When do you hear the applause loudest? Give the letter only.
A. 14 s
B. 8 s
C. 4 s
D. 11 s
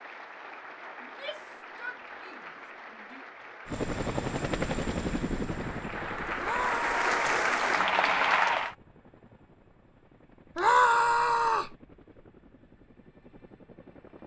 B.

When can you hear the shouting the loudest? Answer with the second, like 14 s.
11 s.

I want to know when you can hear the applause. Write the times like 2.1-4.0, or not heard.
0.0-8.8.